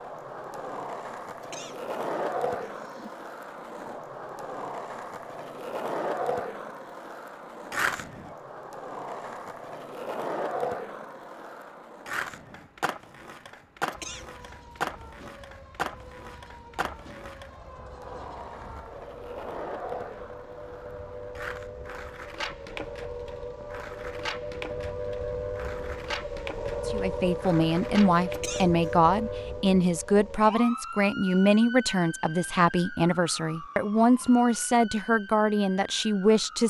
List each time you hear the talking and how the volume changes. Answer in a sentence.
The talking can be heard from 26.9 to 36.6 s, at a steady volume.